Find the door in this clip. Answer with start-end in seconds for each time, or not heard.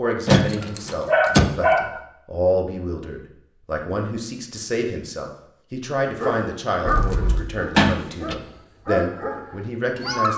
0.2-1.5, 7.8-8.3.